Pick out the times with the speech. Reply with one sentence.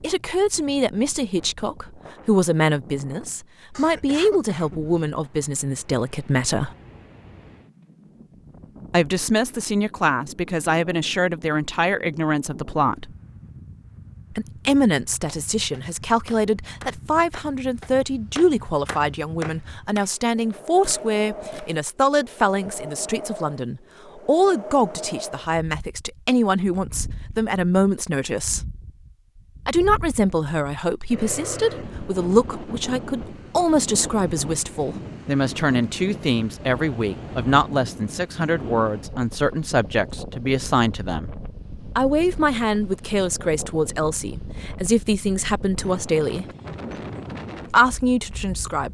The speech can be heard from 0.0 to 6.7 s, from 8.9 to 13.2 s, from 14.3 to 28.6 s, from 29.6 to 41.3 s, from 42.0 to 46.5 s and from 47.7 to 48.8 s.